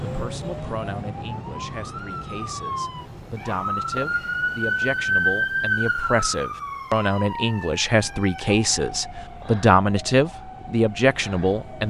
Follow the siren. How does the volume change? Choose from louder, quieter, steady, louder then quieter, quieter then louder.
louder then quieter.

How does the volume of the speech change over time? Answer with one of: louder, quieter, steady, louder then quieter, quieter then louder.
louder.